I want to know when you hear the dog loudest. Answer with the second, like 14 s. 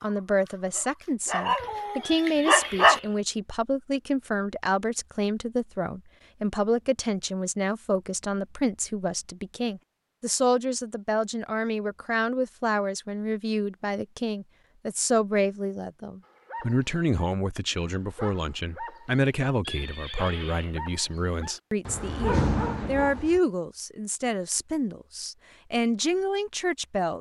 3 s.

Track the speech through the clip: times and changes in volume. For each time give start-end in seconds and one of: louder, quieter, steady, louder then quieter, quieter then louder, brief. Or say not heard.
0.0-27.1 steady.